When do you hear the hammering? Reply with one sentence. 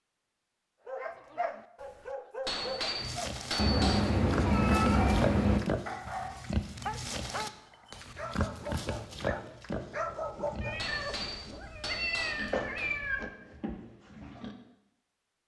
The hammering can be heard from 2.5 to 4.0 s and from 10.8 to 12.9 s.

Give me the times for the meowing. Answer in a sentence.
The meowing can be heard from 3.5 to 5.6 s and from 10.6 to 13.3 s.